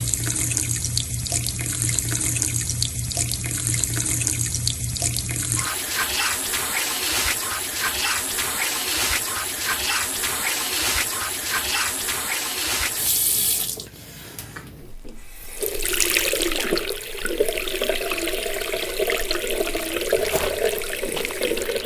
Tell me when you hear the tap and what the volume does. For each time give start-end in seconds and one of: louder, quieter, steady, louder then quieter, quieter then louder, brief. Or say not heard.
0.0-21.8 steady.